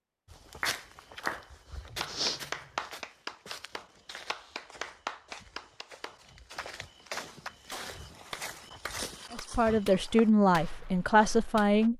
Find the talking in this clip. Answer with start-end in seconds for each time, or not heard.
9.3-11.9.